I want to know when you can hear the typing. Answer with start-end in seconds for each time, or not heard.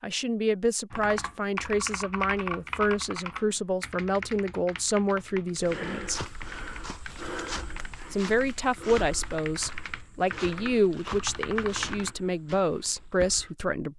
0.9-12.2.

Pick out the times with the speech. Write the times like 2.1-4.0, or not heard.
0.0-6.2, 8.1-13.9.